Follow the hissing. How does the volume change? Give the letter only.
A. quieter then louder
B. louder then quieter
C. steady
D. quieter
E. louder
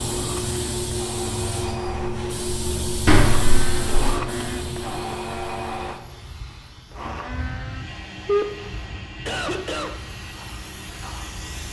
D.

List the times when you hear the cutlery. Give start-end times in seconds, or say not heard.
not heard.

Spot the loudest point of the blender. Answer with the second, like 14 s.
4 s.